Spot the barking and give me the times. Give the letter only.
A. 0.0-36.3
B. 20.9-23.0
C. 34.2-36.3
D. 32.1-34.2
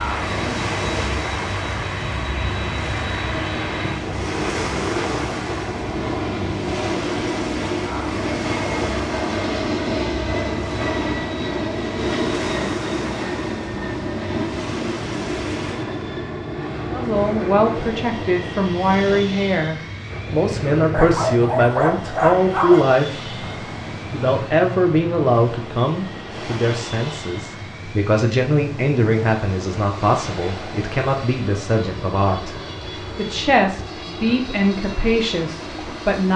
B.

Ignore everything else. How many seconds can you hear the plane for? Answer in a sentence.
The plane can be heard for 36 seconds in total.